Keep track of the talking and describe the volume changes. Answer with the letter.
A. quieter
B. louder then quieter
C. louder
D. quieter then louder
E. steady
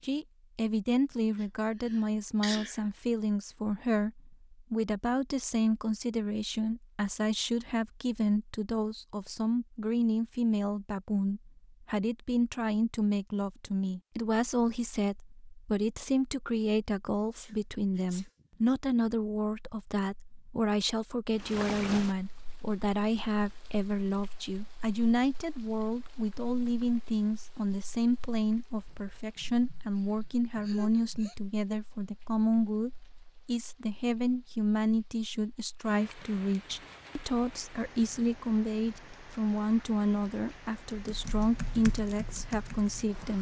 E.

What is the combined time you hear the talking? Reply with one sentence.
The talking can be heard for 43 seconds in total.